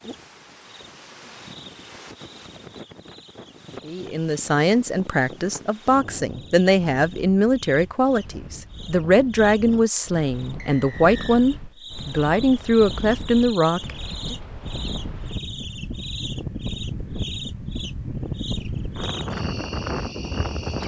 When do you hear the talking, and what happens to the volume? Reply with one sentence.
The talking can be heard from 3.9 to 14.3 s, at a steady volume.